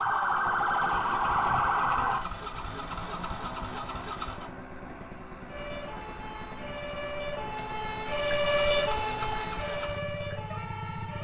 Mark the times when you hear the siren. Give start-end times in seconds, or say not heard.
0.0-2.2, 5.5-11.1.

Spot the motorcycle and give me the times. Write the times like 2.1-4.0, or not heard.
0.0-11.1.